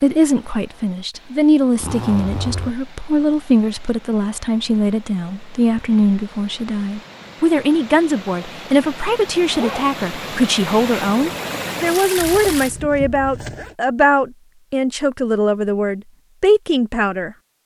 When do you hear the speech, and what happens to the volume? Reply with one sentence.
The speech can be heard from 0.0 to 17.4 s, at a steady volume.